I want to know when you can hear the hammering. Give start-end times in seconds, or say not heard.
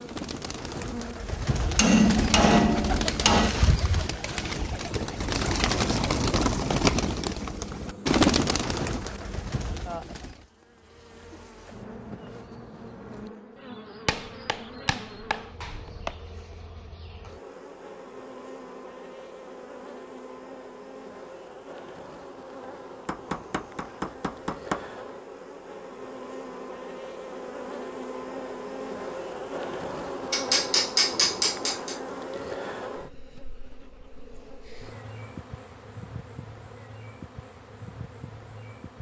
1.8-3.5, 14.1-16.1, 23.1-24.8, 30.3-31.9.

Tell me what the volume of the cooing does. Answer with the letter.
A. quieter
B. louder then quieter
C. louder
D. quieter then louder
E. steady
C.